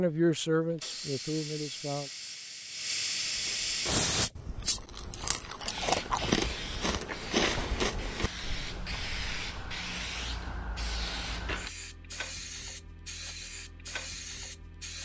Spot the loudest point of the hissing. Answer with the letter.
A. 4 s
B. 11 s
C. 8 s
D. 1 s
A.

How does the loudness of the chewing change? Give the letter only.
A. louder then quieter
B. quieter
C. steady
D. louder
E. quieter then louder
A.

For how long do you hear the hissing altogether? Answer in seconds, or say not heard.
15 s.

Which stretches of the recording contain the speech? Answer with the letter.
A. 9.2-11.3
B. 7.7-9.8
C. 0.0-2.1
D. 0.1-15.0
C.